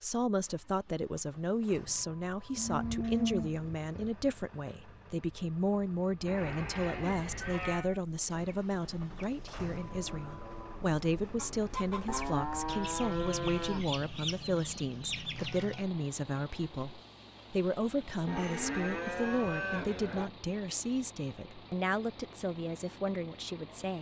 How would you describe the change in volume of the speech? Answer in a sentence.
The volume of the speech stays about the same.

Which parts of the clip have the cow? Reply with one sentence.
The cow can be heard from 2.5 to 4.1 s, from 6.2 to 7.8 s, from 12.1 to 14.0 s and from 18.2 to 20.3 s.